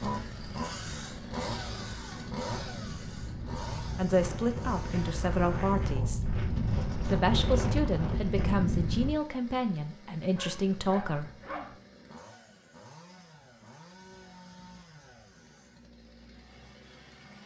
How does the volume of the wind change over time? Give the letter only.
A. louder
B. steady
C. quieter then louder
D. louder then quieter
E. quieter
A.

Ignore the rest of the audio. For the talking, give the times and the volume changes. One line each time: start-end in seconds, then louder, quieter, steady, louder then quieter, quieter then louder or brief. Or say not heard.
4.0-6.2 brief
7.0-11.3 steady.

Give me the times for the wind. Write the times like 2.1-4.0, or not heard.
0.2-9.2.